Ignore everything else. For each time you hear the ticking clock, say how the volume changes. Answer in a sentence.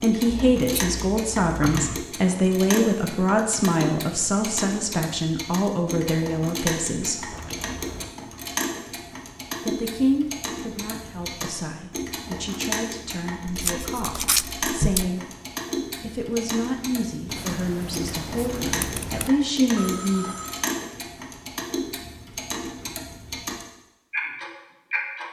You can hear the ticking clock from 0.0 to 25.2 s, at a steady volume.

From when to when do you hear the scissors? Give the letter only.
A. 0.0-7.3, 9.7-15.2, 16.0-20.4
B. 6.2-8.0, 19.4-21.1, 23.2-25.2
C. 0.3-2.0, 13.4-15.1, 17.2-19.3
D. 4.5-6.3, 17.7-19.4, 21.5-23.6
C.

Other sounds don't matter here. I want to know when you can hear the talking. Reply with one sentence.
You can hear the talking from 0.0 to 7.3 s, from 9.7 to 15.2 s and from 16.0 to 20.4 s.